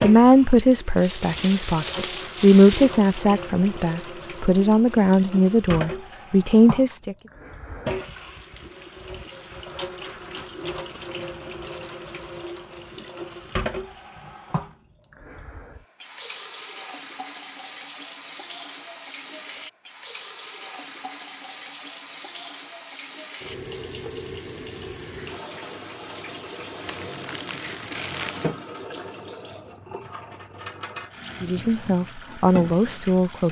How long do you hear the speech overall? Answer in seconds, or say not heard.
9 s.